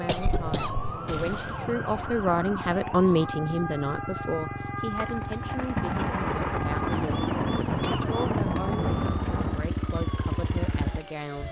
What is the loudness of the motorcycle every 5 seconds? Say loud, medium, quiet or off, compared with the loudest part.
medium, loud, loud.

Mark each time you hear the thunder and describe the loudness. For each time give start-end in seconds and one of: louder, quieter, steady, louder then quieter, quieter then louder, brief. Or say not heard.
5.0-9.7 steady.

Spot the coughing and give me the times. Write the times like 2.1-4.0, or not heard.
0.1-1.6, 6.0-8.1.